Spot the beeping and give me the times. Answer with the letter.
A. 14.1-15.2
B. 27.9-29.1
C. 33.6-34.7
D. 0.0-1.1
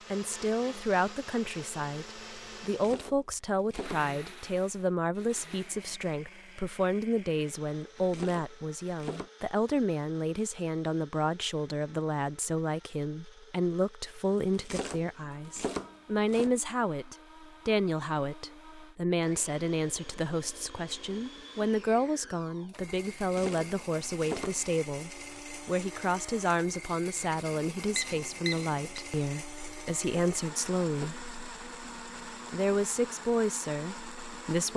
B.